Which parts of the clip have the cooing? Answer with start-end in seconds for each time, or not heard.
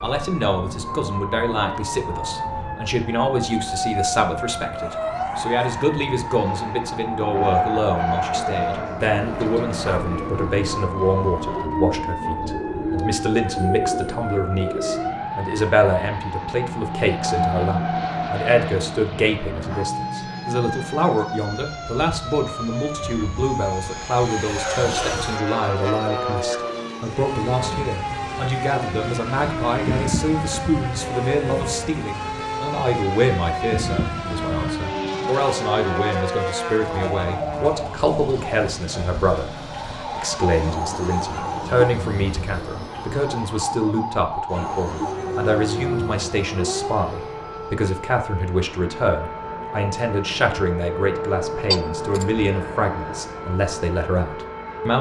9.1-15.2.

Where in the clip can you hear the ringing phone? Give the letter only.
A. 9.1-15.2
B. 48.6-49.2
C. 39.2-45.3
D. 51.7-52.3
D.